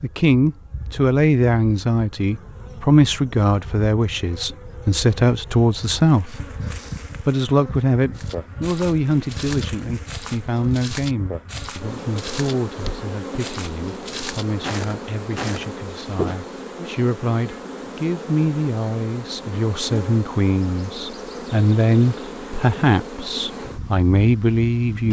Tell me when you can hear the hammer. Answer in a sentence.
You can't hear the hammer here.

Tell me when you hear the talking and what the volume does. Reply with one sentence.
You can hear the talking from 0.0 to 25.0 s, getting quieter then louder.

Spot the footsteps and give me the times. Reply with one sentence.
You can hear the footsteps from 8.1 to 16.4 s.